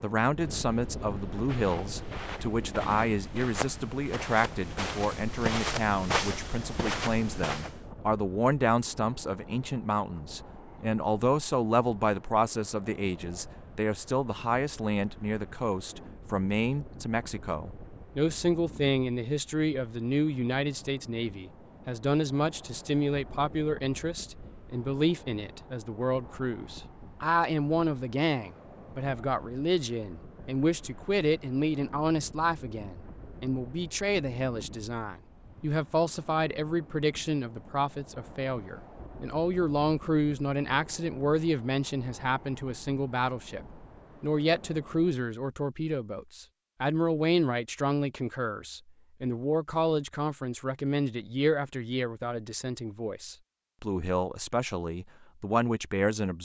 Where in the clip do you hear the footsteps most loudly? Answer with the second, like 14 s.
6 s.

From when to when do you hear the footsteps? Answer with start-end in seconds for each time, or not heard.
1.3-7.8.